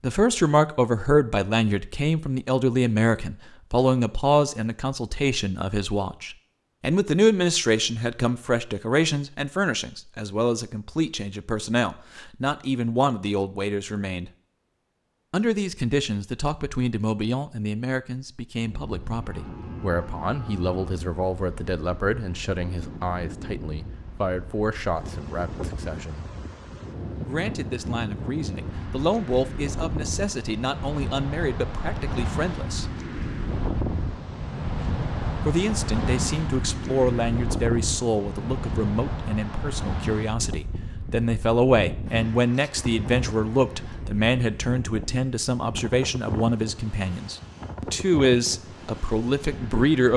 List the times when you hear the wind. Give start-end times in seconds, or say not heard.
18.6-50.1.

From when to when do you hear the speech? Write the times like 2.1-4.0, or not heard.
0.0-14.3, 15.3-26.2, 27.2-32.9, 35.5-50.1.